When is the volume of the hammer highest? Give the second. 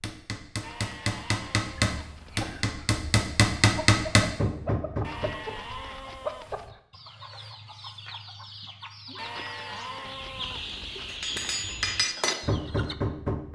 4 s.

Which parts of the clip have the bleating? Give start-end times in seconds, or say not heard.
0.6-2.5, 5.0-6.7, 9.2-11.2.